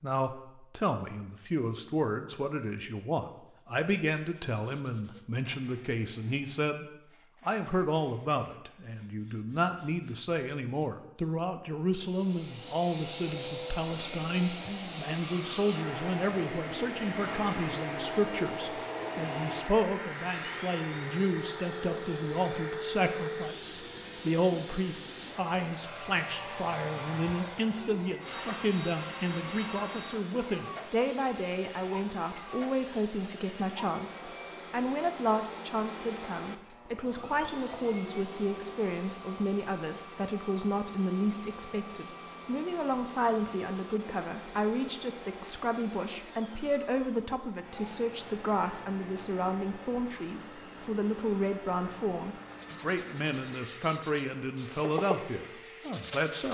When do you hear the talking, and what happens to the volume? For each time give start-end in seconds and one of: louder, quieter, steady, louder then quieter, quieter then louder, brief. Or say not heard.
0.0-6.8 steady
7.5-56.4 steady.